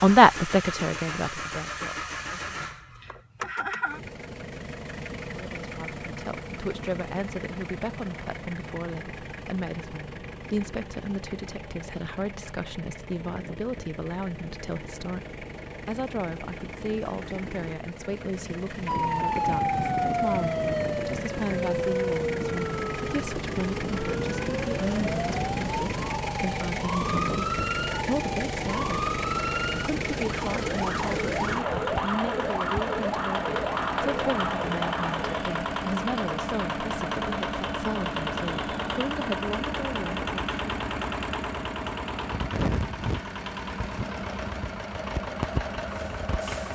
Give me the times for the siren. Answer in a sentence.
The siren can be heard from 18.9 to 35.4 s.